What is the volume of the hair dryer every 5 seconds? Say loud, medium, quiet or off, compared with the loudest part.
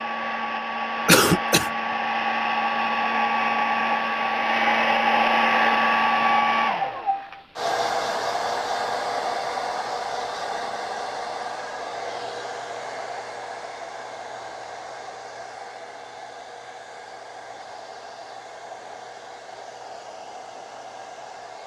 loud, loud, medium, quiet, quiet.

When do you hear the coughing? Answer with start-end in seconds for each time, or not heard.
1.1-1.7.